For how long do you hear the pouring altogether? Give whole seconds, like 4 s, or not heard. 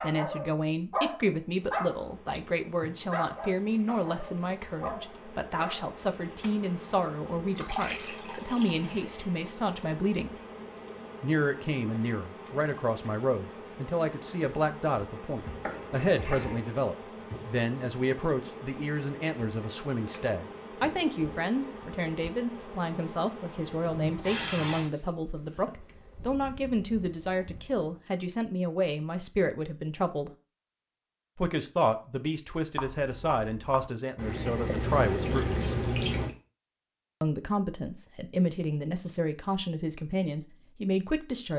5 s.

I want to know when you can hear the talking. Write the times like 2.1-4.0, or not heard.
0.0-10.4, 11.2-30.3, 31.4-35.8, 37.2-41.5.